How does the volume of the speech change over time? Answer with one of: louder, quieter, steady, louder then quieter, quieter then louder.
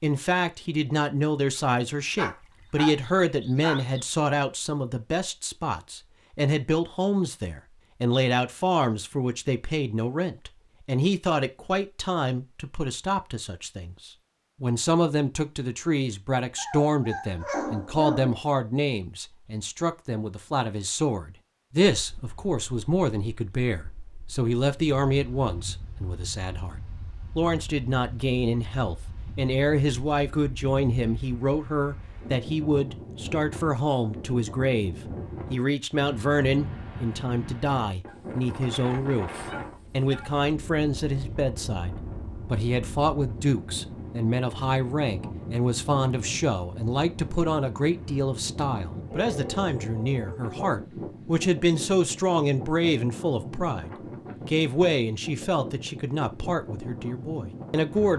steady.